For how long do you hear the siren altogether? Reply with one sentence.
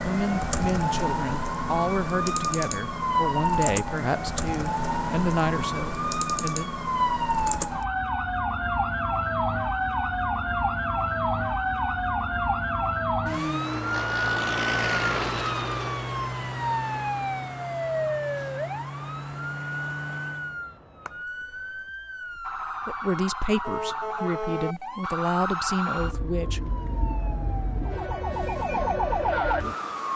The siren can be heard for 30 seconds in total.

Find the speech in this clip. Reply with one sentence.
The speech can be heard from 0.0 to 6.7 s and from 22.9 to 26.7 s.